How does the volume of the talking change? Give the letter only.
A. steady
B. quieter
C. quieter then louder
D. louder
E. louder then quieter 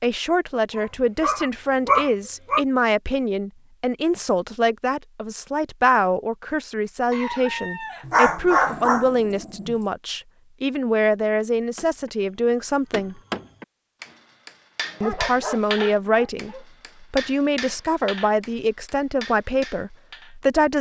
A.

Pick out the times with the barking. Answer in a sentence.
You can hear the barking from 0.8 to 2.6 s, from 8.1 to 9.8 s and from 14.8 to 16.6 s.